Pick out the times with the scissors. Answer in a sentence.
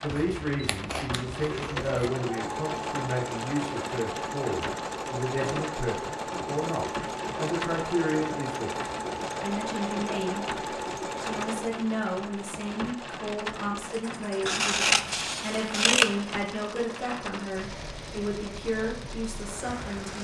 The scissors can be heard from 0.1 to 2.1 s and from 14.4 to 16.1 s.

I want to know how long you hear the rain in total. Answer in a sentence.
The rain can be heard for 20 seconds in total.